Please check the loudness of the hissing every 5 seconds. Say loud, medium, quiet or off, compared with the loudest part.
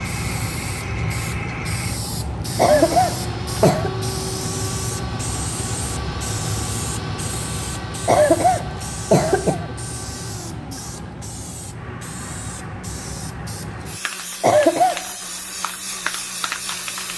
loud, loud, medium, loud.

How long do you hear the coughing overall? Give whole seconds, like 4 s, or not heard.
4 s.